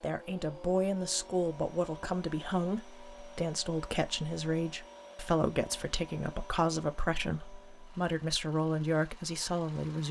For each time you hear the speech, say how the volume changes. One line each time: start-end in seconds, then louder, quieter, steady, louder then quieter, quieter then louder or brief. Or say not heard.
0.0-10.0 steady.